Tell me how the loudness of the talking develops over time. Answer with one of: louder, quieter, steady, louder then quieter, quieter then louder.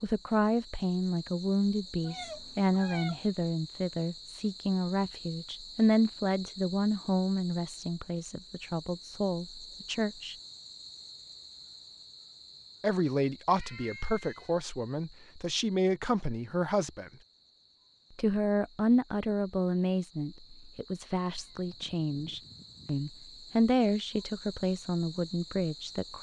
steady.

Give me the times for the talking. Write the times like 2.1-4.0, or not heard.
0.0-10.3, 12.8-17.1, 18.1-26.1.